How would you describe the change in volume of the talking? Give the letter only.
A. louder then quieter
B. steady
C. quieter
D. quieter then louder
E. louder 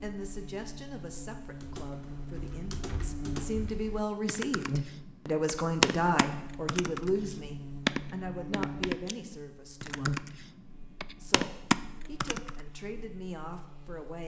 A.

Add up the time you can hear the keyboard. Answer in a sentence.
The keyboard can be heard for 11 seconds in total.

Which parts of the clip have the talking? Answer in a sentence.
The talking can be heard from 0.0 to 10.2 s and from 11.2 to 14.2 s.